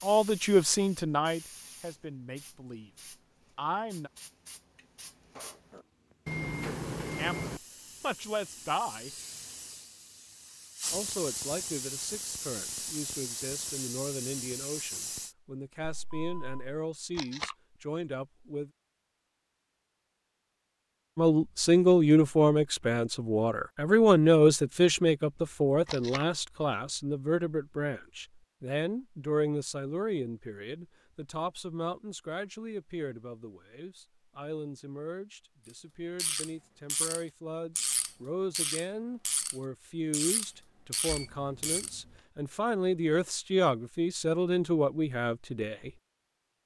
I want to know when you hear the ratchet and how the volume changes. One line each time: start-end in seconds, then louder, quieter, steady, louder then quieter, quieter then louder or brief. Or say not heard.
36.1-42.0 steady.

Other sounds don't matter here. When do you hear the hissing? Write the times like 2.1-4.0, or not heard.
0.0-15.3.